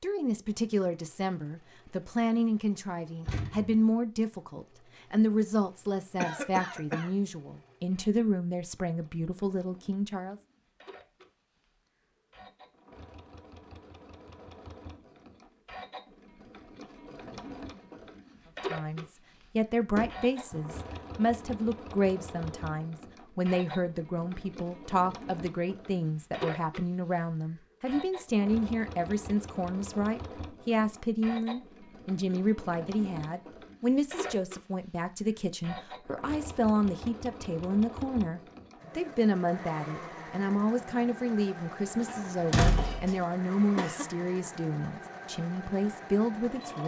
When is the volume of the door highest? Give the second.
43 s.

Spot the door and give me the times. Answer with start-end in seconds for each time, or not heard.
3.2-3.8, 19.9-20.6, 42.0-43.1.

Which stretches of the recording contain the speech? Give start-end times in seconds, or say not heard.
0.0-10.3, 18.7-46.8.